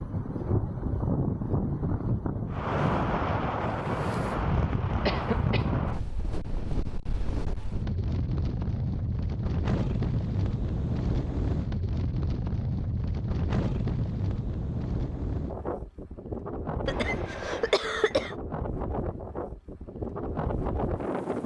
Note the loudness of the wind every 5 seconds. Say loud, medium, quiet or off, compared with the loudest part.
loud, loud, loud, medium, loud.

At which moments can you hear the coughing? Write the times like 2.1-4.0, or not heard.
5.0-5.7, 16.9-18.4.